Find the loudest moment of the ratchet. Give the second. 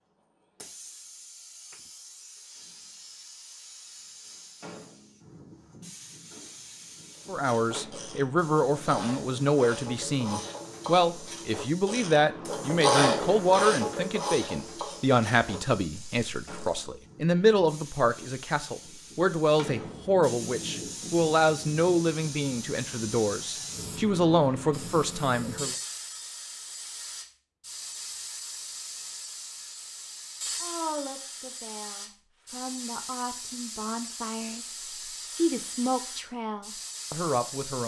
13 s.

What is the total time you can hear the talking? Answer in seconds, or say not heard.
26 s.